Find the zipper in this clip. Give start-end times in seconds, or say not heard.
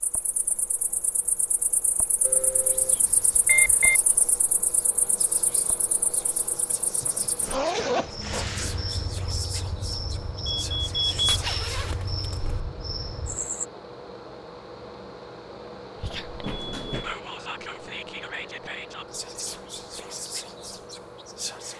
7.0-8.5, 11.2-12.6.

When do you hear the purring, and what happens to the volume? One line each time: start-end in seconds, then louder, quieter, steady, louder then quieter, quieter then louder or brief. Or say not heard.
not heard.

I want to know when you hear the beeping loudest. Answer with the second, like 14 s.
4 s.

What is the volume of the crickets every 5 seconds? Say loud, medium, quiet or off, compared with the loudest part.
medium, loud, loud, off, off.